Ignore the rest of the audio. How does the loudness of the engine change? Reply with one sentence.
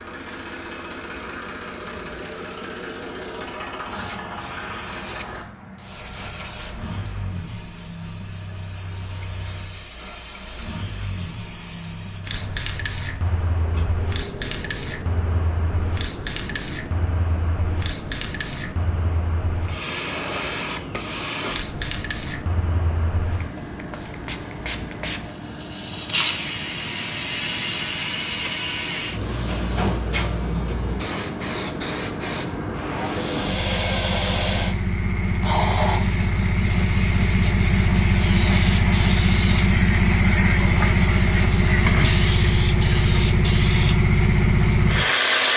The volume of the engine goes up.